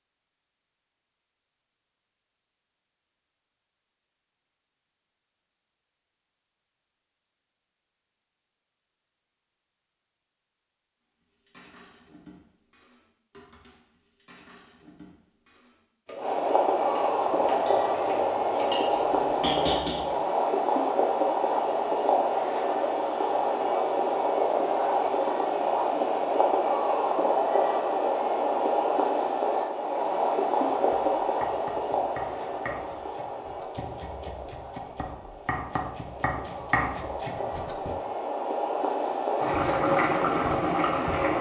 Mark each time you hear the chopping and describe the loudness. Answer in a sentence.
The chopping can be heard from 30.8 to 38.0 s, getting louder.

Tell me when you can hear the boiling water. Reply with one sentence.
You can hear the boiling water from 16.1 to 41.3 s.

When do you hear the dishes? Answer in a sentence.
You can hear the dishes from 11.2 to 20.1 s.